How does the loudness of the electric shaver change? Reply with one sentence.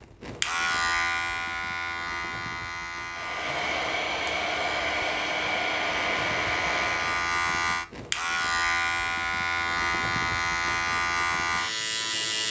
The loudness of the electric shaver goes down, then up.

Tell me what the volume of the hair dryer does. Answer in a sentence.
The loudness of the hair dryer stays about the same.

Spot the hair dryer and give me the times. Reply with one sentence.
You can hear the hair dryer from 3.1 to 7.3 s.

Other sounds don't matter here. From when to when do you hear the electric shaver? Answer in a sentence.
The electric shaver can be heard from 0.0 to 12.4 s.